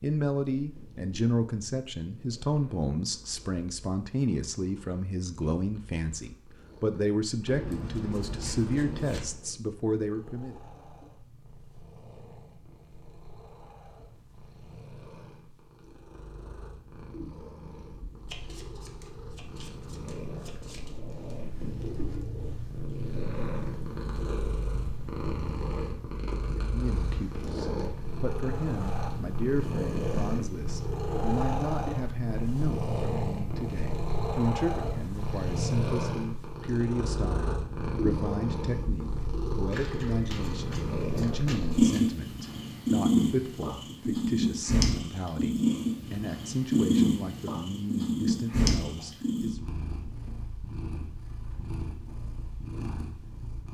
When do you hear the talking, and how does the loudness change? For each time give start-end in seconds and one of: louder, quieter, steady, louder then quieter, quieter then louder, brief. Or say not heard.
0.0-10.6 steady
26.6-49.6 steady.